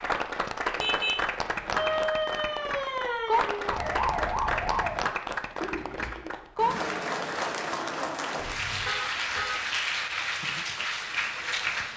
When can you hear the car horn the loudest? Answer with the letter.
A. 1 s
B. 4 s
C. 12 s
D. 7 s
A.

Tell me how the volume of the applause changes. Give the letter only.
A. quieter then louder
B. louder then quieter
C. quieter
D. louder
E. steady
E.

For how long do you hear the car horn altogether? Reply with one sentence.
The car horn can be heard for 3 seconds in total.